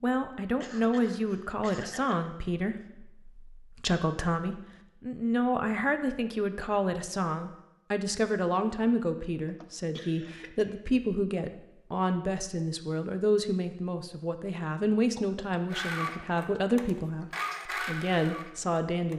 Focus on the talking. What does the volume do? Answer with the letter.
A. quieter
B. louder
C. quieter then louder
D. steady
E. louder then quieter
D.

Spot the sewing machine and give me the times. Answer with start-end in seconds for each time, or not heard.
15.7-19.1.